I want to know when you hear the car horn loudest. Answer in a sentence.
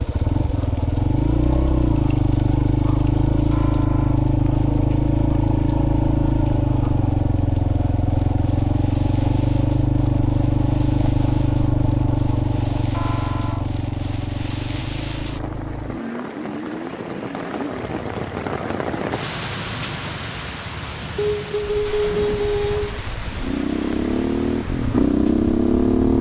The volume of the car horn peaks at 22 seconds.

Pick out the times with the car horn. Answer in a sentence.
The car horn can be heard from 3.5 to 4.3 s, from 12.9 to 13.7 s and from 21.1 to 22.9 s.